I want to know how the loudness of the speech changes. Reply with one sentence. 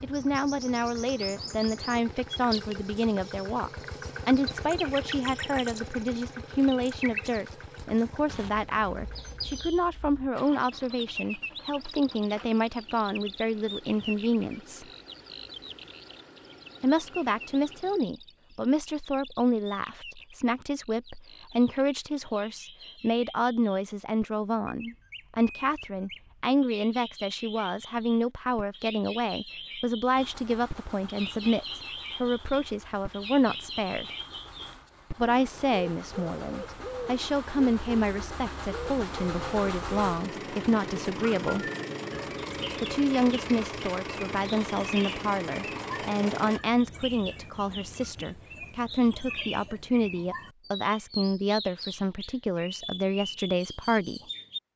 The volume of the speech stays about the same.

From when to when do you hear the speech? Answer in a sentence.
The speech can be heard from 0.0 to 14.8 s, from 16.8 to 34.1 s, from 35.1 to 41.7 s and from 42.8 to 54.2 s.